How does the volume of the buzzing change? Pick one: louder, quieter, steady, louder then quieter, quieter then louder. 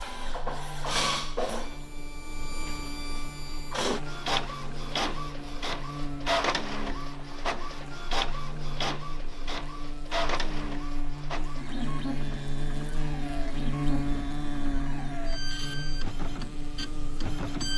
louder.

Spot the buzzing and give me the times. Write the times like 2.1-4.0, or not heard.
0.0-17.7.